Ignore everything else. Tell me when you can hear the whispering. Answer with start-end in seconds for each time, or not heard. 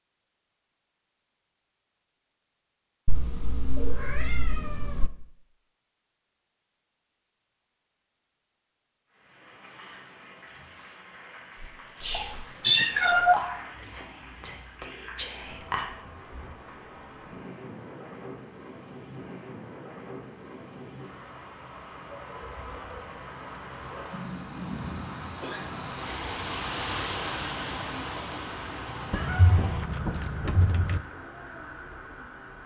11.6-15.9.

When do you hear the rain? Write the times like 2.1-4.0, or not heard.
9.1-32.6.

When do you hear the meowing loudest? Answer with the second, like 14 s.
13 s.